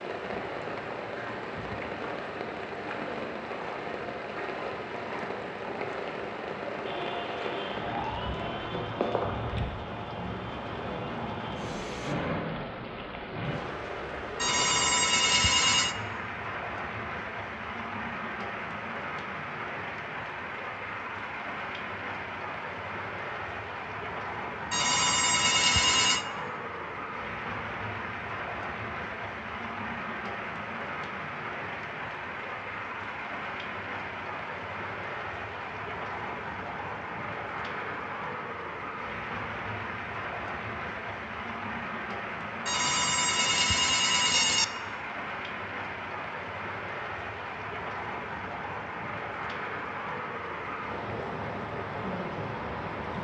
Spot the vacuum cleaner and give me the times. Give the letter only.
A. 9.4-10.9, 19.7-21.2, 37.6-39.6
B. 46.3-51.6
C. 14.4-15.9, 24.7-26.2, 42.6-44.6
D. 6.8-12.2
D.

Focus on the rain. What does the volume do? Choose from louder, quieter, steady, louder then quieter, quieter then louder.
steady.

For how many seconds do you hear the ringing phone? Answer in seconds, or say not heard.
5 s.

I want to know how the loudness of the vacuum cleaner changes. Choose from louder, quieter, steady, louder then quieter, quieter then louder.
quieter.